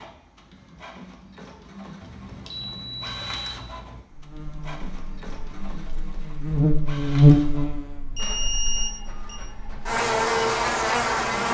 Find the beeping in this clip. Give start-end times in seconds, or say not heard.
2.0-4.0, 8.2-9.4.